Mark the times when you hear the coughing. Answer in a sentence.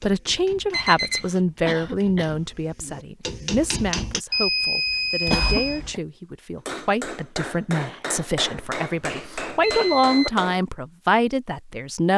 The coughing can be heard from 1.6 to 2.4 s, from 5.2 to 6.0 s and from 9.8 to 10.3 s.